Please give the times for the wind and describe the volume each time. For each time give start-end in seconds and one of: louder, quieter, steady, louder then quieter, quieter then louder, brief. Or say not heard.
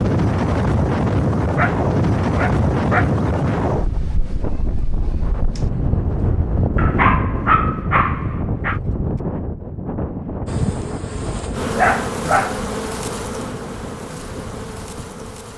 0.0-15.5 quieter.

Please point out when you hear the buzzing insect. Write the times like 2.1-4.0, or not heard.
10.4-15.5.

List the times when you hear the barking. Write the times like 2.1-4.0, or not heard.
1.6-3.2, 6.8-8.8, 11.8-12.6.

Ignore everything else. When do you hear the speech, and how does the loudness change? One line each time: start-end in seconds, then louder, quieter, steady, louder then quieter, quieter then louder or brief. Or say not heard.
not heard.